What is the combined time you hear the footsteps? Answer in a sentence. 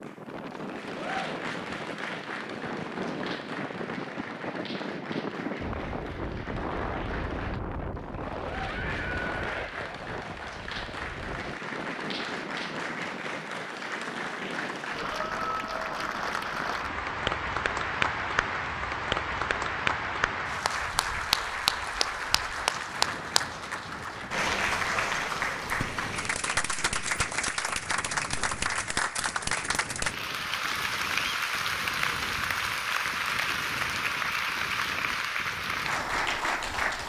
The footsteps can't be heard in this clip.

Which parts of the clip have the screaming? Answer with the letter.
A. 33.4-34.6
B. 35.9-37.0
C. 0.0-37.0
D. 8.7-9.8
D.